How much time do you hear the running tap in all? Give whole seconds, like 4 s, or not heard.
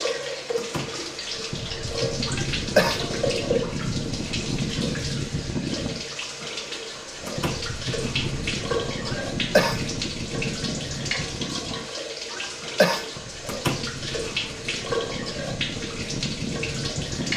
17 s.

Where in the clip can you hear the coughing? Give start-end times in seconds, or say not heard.
2.2-3.0, 9.1-9.8, 12.3-13.1.